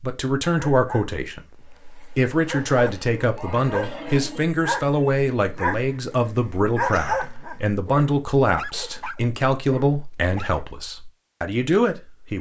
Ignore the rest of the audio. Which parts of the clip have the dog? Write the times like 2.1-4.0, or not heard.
0.6-10.6.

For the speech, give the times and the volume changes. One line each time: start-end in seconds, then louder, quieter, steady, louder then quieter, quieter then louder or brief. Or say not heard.
0.0-12.3 steady.